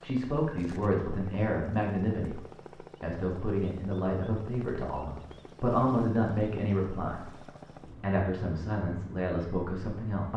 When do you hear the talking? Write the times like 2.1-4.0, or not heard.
0.0-2.4, 3.0-7.2, 8.0-10.3.